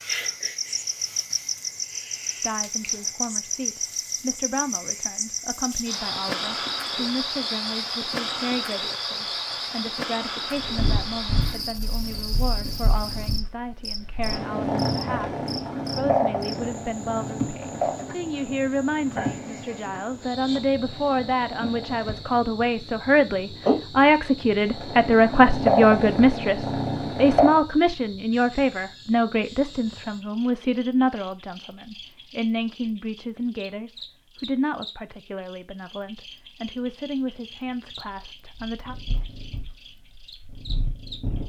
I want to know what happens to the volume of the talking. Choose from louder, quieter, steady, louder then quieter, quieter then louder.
louder then quieter.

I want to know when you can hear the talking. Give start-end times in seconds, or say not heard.
2.4-39.0.